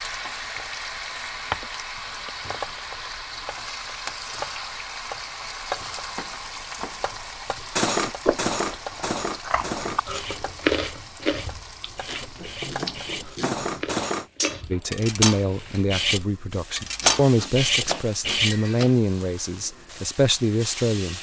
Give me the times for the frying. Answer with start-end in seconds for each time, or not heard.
0.0-21.1.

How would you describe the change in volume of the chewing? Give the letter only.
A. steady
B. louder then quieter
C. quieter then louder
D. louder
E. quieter
B.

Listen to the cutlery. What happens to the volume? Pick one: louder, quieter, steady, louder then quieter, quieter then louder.
quieter then louder.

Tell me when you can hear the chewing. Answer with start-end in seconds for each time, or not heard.
8.2-14.8.